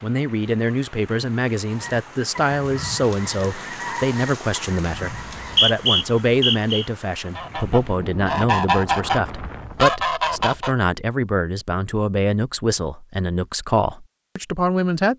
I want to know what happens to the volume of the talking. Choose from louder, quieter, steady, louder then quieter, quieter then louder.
steady.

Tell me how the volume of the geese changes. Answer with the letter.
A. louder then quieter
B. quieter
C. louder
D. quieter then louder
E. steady
C.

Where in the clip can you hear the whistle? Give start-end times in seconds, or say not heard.
5.2-6.8.